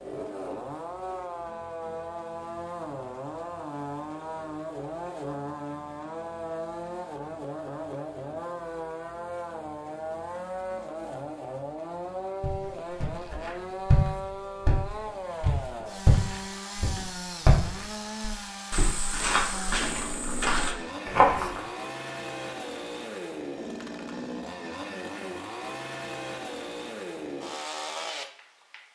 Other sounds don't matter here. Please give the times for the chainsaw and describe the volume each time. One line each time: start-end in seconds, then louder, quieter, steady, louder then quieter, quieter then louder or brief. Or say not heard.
0.0-28.9 steady.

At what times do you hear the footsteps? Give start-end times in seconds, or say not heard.
12.4-21.6.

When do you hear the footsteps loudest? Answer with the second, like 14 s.
21 s.